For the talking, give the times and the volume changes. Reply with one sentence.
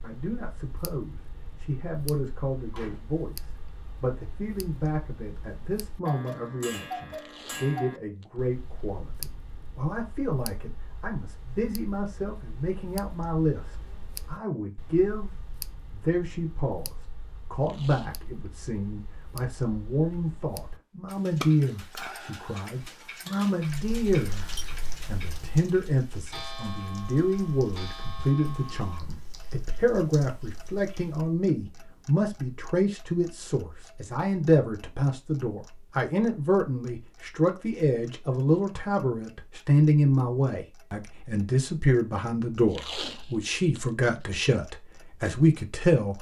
The talking can be heard from 0.0 to 46.1 s, getting louder.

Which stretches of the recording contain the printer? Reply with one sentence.
You can't hear the printer here.